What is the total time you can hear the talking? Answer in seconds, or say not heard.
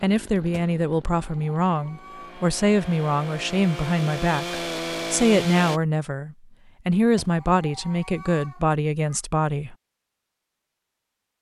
10 s.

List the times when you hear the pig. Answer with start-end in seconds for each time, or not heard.
not heard.